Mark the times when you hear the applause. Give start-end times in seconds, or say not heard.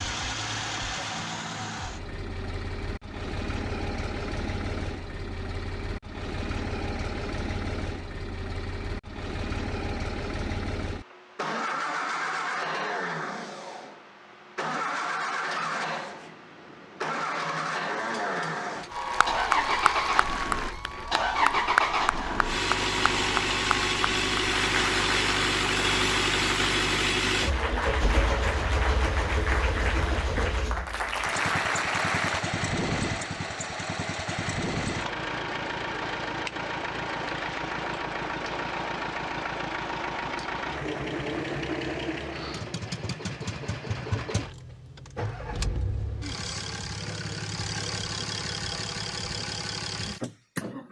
18.9-32.5.